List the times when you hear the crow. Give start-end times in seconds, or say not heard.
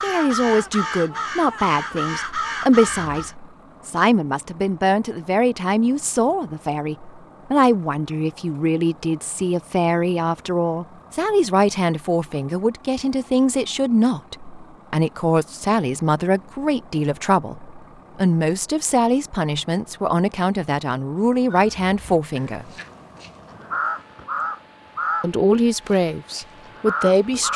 0.0-3.4, 21.5-27.5.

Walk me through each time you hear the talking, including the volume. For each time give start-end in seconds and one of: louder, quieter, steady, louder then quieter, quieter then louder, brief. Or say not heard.
0.0-22.6 steady
25.2-27.5 brief.